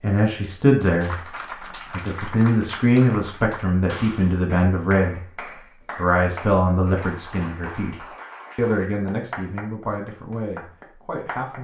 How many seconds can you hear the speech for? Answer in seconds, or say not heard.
10 s.